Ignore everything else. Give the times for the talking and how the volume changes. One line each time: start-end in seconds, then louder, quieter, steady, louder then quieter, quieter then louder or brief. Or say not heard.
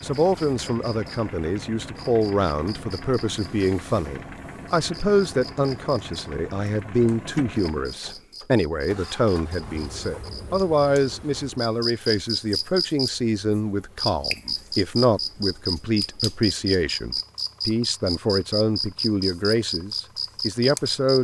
0.0-21.2 steady.